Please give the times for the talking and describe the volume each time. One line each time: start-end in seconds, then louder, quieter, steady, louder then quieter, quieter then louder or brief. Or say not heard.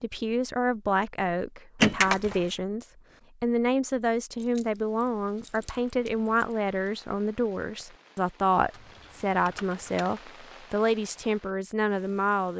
0.0-12.5 steady.